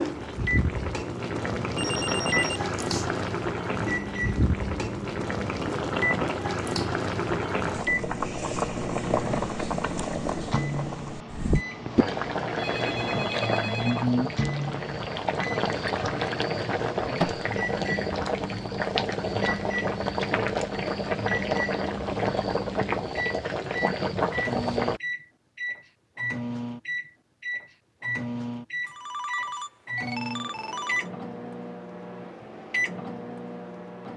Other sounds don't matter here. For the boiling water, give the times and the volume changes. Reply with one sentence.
You can hear the boiling water from 0.0 to 25.0 s, at a steady volume.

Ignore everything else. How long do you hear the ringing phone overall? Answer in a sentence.
You can hear the ringing phone for 5 seconds altogether.